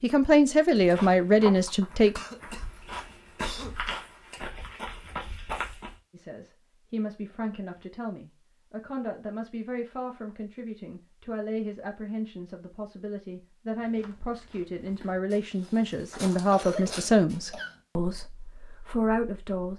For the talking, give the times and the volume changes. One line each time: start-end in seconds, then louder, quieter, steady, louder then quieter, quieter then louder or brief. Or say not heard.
0.0-2.2 brief
6.1-19.7 louder.